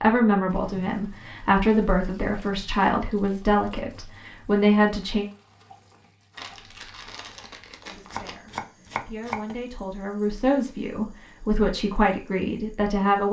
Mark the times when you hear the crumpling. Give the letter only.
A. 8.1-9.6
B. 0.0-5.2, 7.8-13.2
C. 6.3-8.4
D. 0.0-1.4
C.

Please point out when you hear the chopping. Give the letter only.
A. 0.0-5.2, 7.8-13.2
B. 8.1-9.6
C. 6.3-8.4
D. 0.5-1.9
B.